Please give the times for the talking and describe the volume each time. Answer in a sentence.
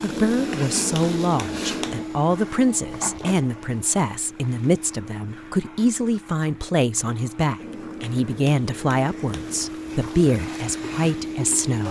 You can hear the talking from 0.0 to 11.8 s, at a steady volume.